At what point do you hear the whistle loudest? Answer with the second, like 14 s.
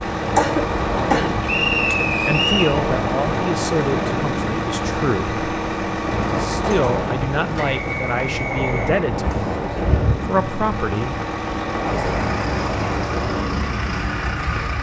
2 s.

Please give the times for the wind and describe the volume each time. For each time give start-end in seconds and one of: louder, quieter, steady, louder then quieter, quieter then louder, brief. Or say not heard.
0.1-14.7 steady.